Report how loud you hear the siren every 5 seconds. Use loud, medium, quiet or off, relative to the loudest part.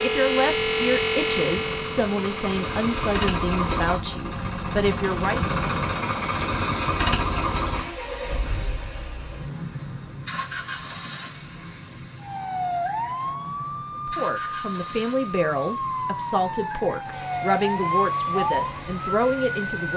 loud, off, loud, loud.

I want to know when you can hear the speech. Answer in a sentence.
The speech can be heard from 0.0 to 5.5 s and from 14.1 to 19.9 s.